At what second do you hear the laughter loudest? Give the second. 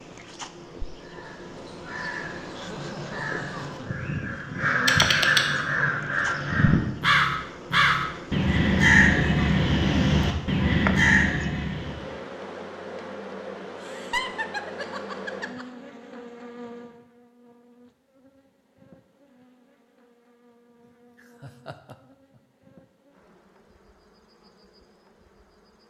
14 s.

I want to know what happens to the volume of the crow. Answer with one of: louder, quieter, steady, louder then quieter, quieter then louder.
louder.